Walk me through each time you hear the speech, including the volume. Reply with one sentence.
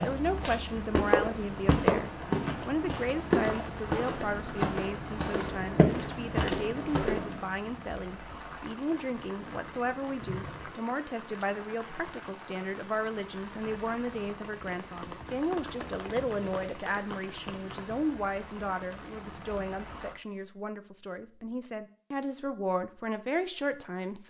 You can hear the speech from 0.0 to 24.2 s, at a steady volume.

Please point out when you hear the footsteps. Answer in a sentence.
You can hear the footsteps from 0.0 to 7.5 s.